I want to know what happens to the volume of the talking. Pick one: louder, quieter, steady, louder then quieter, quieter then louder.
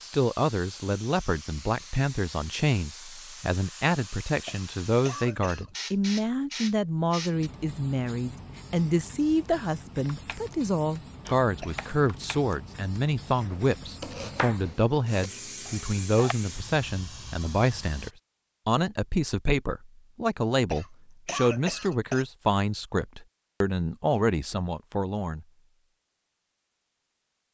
steady.